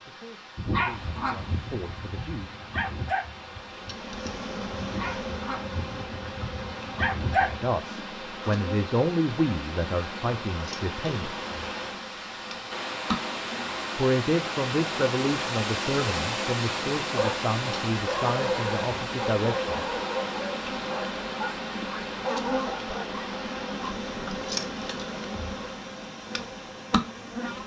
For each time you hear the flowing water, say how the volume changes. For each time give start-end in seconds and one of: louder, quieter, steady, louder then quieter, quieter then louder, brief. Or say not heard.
0.0-27.6 louder then quieter.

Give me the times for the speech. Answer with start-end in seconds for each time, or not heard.
0.0-2.6, 7.3-11.3, 13.9-19.8.